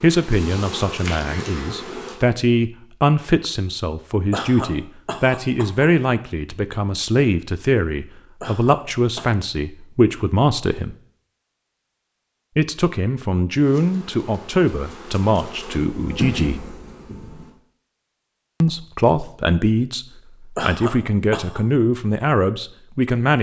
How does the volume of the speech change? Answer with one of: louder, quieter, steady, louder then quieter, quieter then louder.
steady.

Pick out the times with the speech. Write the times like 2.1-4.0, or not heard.
0.0-10.9, 12.6-16.6, 18.6-23.3.